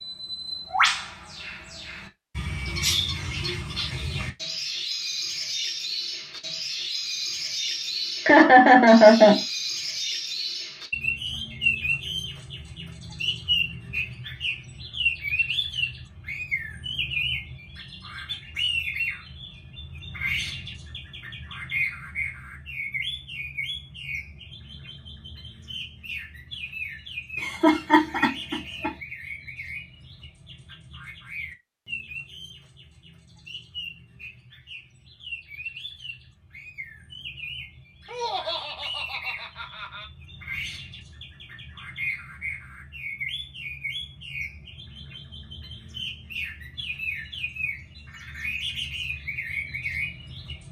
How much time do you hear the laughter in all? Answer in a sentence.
The laughter can be heard for 5 seconds in total.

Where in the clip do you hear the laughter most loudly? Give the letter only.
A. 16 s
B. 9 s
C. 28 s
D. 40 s
B.